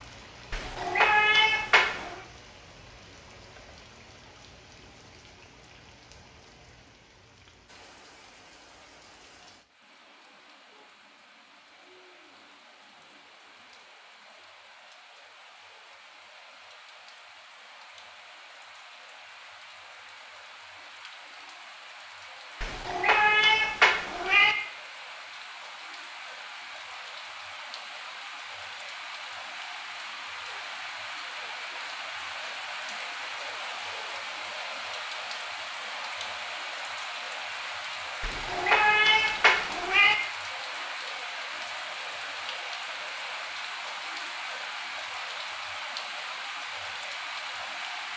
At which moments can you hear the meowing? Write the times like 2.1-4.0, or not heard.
0.5-2.2, 22.6-24.6, 38.2-40.1.